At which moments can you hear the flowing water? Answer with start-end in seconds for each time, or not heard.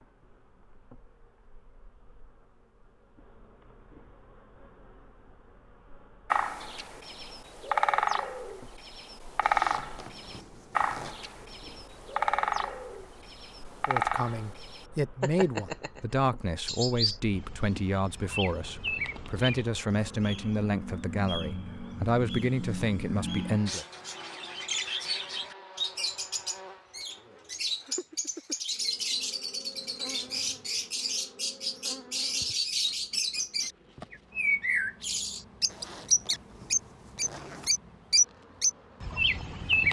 not heard.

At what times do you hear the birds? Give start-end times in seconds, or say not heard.
6.3-39.8.